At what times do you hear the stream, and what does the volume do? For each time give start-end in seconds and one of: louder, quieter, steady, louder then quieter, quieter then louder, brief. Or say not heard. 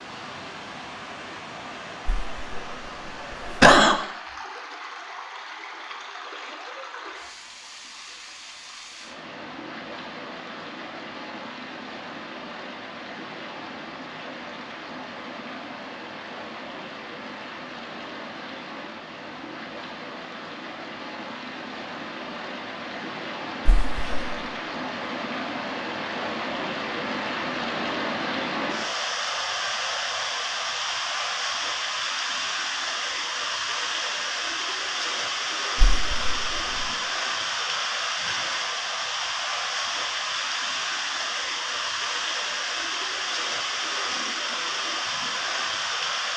0.0-46.3 louder.